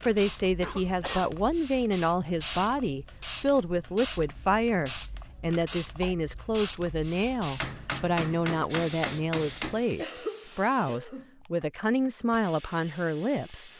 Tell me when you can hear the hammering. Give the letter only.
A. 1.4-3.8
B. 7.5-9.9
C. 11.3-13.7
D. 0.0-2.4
B.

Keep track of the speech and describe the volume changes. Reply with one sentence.
The loudness of the speech stays about the same.